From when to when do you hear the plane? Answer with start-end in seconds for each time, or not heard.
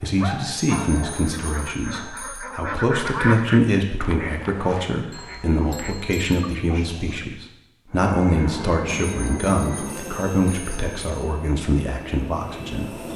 7.9-13.1.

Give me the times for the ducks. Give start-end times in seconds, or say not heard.
1.2-7.4.